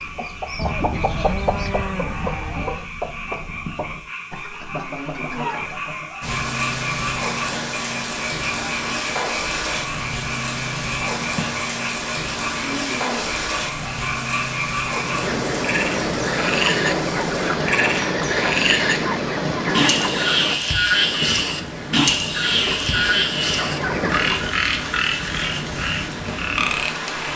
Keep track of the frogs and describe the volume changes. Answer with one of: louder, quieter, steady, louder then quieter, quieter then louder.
louder.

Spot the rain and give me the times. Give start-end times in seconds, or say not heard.
6.2-27.3.